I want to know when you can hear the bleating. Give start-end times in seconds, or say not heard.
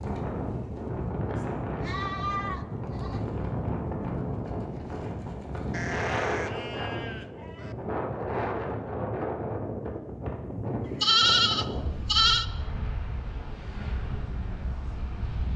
1.8-3.2, 5.7-7.8, 11.0-12.4.